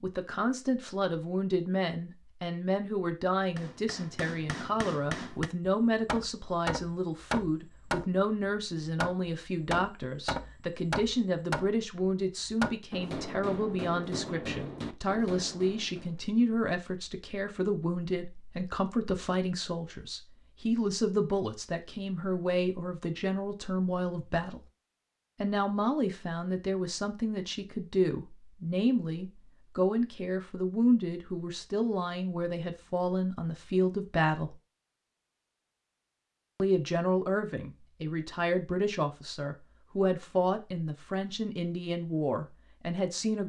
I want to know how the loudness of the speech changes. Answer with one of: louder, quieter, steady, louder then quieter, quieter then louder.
steady.